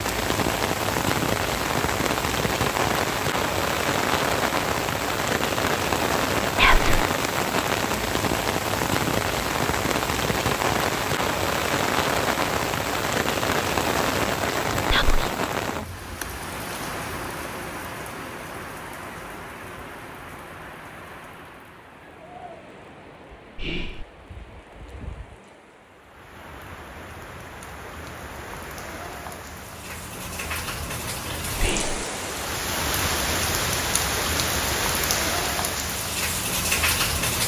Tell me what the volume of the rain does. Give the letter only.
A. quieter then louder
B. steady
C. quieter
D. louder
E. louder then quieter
A.